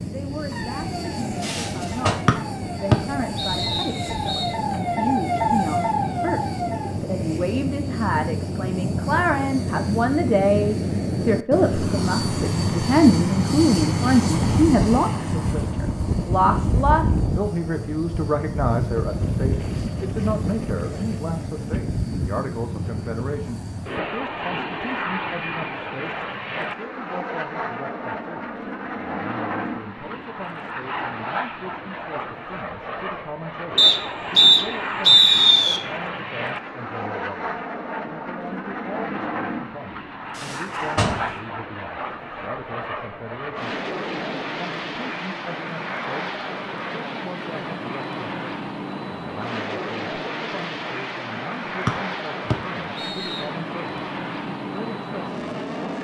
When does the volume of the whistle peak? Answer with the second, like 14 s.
35 s.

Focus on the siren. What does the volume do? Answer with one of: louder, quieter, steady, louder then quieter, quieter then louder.
louder.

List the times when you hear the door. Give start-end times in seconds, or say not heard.
1.4-2.1, 40.4-41.4.